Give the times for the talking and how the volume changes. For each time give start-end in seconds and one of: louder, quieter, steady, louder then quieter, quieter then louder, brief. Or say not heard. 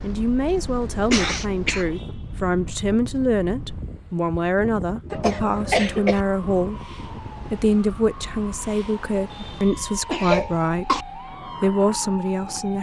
0.0-12.7 steady.